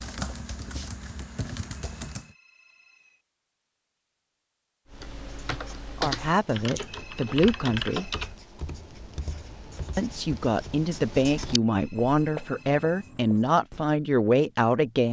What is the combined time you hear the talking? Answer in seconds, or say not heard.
7 s.